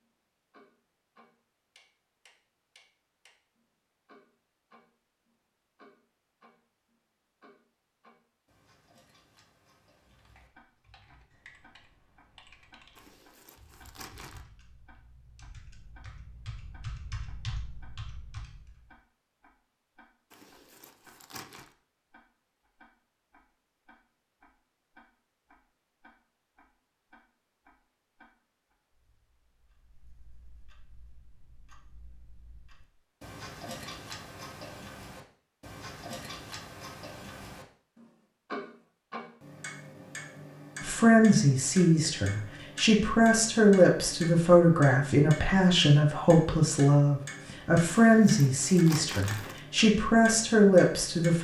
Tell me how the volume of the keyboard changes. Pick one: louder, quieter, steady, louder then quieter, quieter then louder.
louder.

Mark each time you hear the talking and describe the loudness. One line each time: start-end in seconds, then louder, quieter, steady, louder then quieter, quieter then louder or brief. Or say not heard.
40.8-51.3 steady.